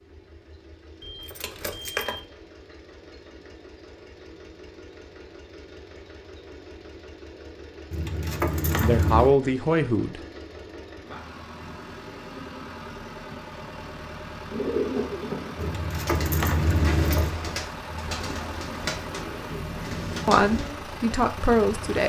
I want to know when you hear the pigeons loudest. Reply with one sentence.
The volume of the pigeons peaks at 15 seconds.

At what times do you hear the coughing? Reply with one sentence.
You can't hear the coughing here.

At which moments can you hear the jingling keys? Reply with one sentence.
The jingling keys can be heard from 1.0 to 2.2 s, from 7.9 to 9.3 s and from 15.6 to 17.4 s.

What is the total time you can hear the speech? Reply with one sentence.
You can hear the speech for 3 seconds altogether.